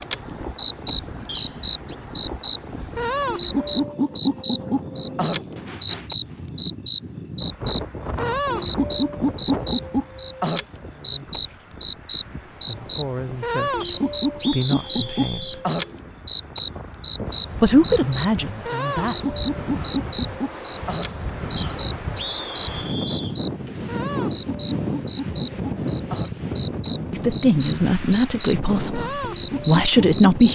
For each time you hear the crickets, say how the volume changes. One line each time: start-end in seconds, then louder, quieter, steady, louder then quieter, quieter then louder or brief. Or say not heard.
0.0-30.5 quieter.